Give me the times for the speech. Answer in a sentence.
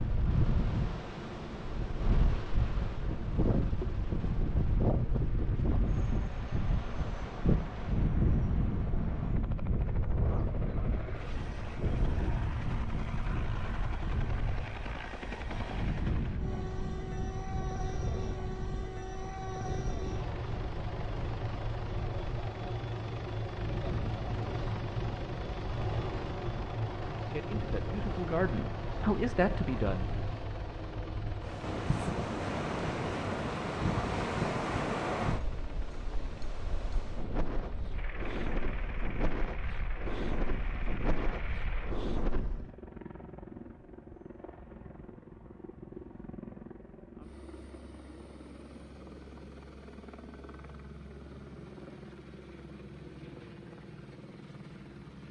You can hear the speech from 27.2 to 30.1 s.